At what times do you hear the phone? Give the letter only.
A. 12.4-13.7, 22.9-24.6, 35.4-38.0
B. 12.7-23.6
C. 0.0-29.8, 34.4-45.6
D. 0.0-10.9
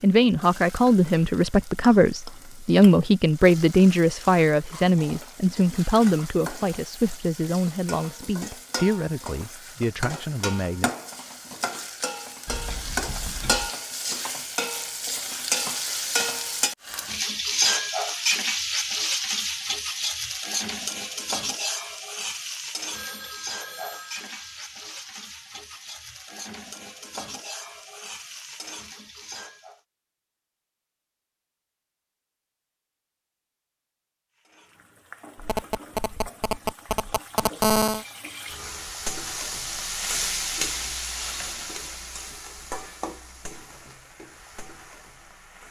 A.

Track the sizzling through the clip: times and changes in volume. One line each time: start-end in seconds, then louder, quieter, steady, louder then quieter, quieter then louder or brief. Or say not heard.
0.0-29.8 louder then quieter
34.4-45.6 louder then quieter.